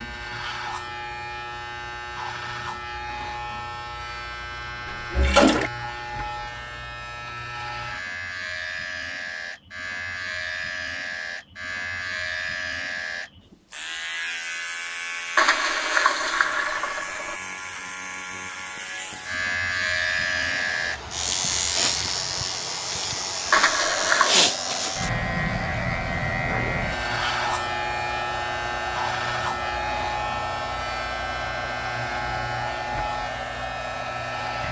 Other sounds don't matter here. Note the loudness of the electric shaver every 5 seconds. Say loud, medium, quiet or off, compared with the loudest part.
medium, medium, medium, medium, loud, loud, medium.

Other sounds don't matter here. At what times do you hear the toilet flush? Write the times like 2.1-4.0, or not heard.
4.8-5.7, 15.3-17.4, 23.5-24.4.